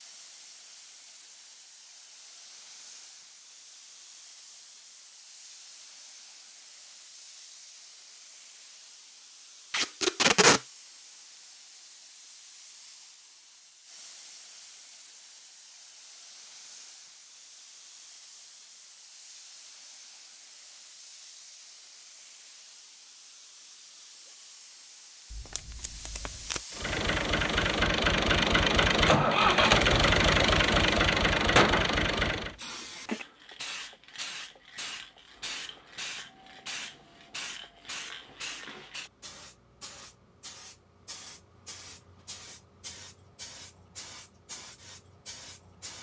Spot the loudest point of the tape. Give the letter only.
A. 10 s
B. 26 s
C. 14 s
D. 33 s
A.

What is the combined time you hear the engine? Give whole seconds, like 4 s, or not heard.
6 s.